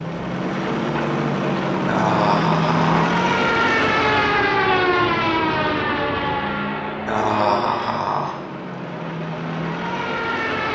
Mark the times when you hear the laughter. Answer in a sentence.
The laughter can be heard from 1.9 to 3.1 s and from 7.0 to 8.3 s.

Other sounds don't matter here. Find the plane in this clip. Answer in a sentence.
The plane can be heard from 0.0 to 10.6 s.